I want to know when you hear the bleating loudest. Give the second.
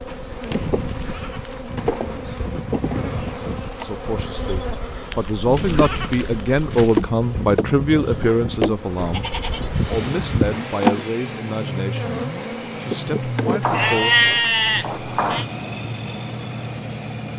14 s.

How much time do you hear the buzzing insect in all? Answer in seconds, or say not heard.
14 s.